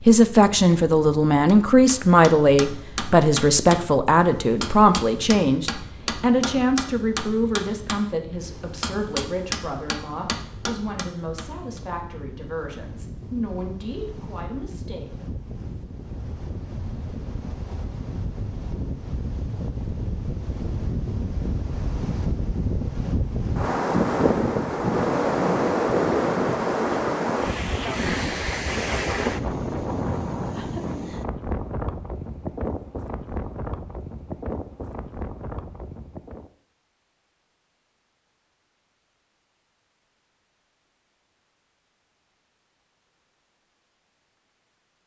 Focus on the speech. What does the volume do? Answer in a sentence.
The loudness of the speech goes down.